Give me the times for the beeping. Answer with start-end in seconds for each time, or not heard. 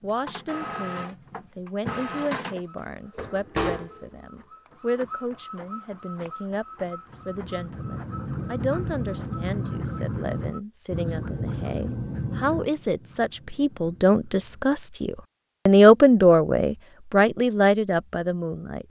not heard.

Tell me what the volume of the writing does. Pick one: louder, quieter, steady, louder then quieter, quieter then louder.
quieter.